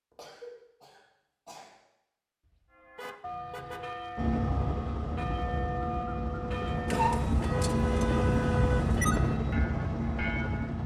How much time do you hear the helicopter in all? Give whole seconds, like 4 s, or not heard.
7 s.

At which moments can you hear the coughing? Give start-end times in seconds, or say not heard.
0.1-1.8, 6.7-7.3.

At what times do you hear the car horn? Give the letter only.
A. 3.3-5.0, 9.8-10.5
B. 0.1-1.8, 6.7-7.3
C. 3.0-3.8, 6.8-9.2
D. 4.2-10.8
C.